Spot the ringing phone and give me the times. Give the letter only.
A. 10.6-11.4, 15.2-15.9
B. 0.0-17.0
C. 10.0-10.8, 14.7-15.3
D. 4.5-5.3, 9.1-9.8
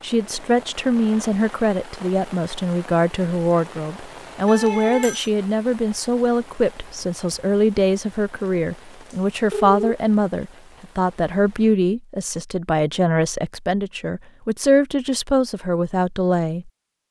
D.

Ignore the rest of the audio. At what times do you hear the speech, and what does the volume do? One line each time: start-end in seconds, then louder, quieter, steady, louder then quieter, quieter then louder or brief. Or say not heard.
0.0-17.0 steady.